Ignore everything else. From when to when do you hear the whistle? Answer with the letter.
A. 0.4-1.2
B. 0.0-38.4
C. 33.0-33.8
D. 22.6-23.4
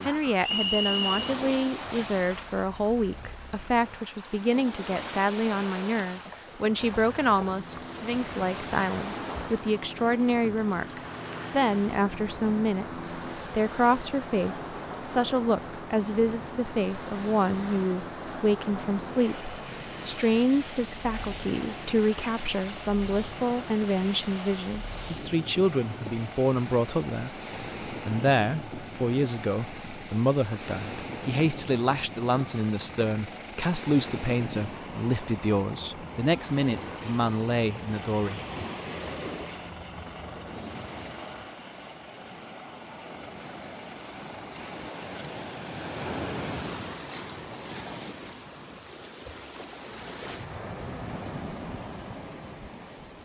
A.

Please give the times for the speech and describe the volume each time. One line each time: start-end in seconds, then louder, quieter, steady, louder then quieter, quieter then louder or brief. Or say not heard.
0.0-38.4 steady.